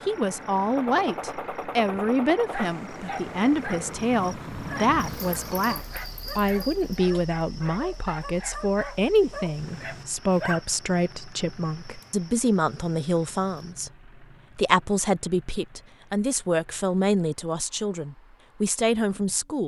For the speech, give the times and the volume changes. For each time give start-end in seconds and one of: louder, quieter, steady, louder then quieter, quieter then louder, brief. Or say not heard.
0.1-19.6 steady.